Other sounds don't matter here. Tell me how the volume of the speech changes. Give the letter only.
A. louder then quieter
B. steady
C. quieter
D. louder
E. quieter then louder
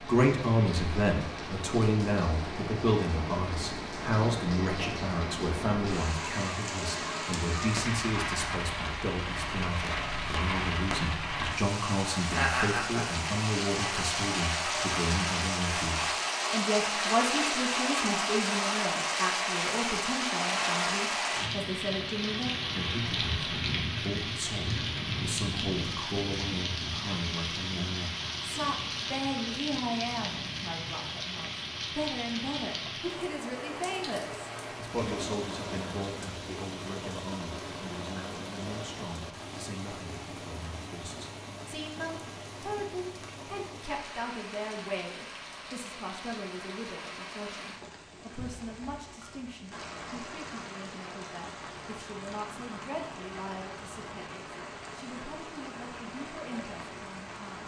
C.